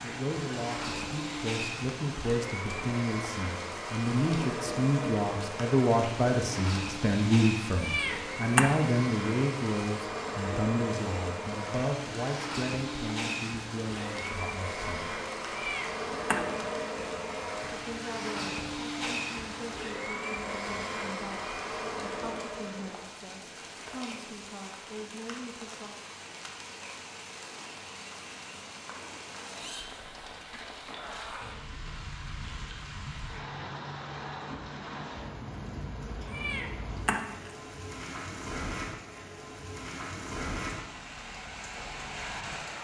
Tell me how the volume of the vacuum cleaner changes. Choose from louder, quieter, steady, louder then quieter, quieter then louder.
steady.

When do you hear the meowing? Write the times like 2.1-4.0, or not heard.
7.8-8.8, 15.5-16.7, 36.2-37.5.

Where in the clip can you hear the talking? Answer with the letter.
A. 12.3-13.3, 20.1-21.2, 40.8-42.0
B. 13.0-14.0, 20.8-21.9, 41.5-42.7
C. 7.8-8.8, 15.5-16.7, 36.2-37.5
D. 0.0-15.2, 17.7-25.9
D.